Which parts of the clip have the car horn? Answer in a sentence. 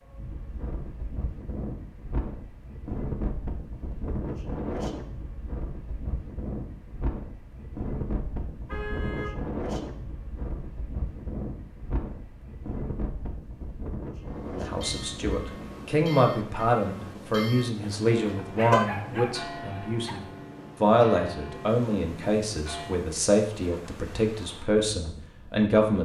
You can hear the car horn from 8.7 to 9.3 s and from 17.8 to 18.9 s.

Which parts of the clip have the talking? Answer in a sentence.
The talking can be heard from 14.5 to 26.0 s.